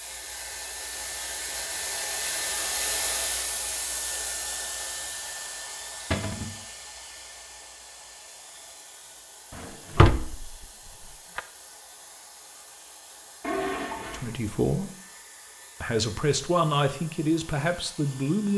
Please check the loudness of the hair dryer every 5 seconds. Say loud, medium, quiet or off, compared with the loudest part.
loud, medium, quiet, quiet.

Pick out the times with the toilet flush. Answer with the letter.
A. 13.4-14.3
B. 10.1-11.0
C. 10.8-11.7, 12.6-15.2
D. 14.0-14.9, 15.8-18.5
A.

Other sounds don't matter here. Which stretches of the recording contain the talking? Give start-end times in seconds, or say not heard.
14.0-14.9, 15.8-18.5.